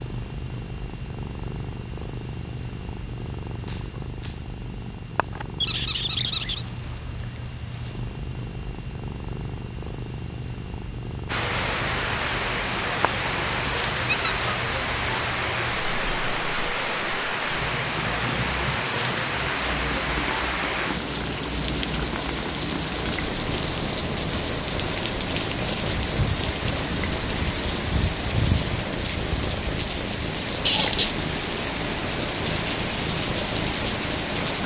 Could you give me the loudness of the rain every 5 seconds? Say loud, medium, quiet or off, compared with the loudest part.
off, off, loud, loud, loud, loud, loud.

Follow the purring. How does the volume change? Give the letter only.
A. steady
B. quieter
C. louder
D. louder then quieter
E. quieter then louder
A.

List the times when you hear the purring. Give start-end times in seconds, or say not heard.
0.0-34.6.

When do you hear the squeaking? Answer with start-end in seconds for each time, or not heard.
5.6-6.7, 14.1-14.5, 30.6-31.1.